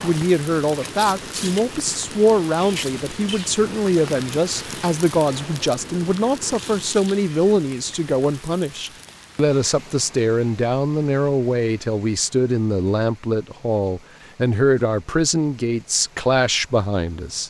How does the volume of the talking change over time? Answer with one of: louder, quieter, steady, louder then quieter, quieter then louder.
steady.